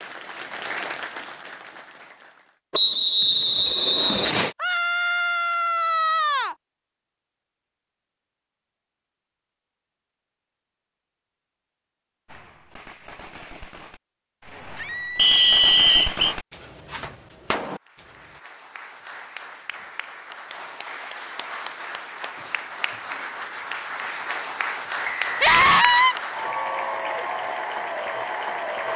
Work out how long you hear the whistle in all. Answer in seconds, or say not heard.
4 s.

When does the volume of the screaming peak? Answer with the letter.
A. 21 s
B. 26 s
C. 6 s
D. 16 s
B.